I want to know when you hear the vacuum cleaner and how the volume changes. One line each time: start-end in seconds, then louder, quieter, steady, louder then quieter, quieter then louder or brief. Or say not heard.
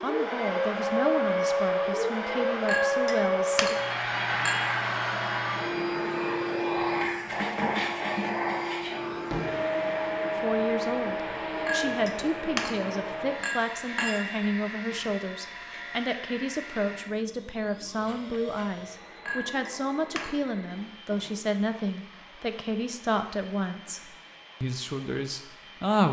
0.0-26.0 quieter.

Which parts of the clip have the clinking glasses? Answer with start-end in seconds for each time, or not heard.
2.6-4.6, 11.7-14.2, 19.2-20.6.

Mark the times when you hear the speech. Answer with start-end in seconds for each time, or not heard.
0.0-3.8, 10.3-26.0.